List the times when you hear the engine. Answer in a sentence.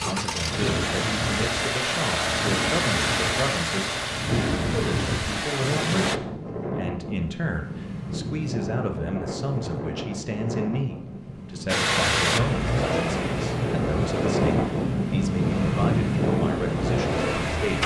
The engine can be heard from 0.0 to 6.2 s and from 11.7 to 17.8 s.